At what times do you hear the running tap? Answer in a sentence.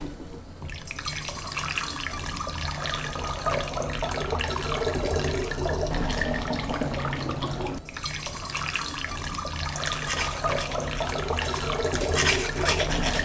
You can hear the running tap from 0.0 to 13.2 s.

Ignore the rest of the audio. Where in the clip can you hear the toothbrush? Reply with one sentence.
The toothbrush can be heard from 9.8 to 13.2 s.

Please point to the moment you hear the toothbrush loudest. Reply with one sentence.
The volume of the toothbrush peaks at 12 seconds.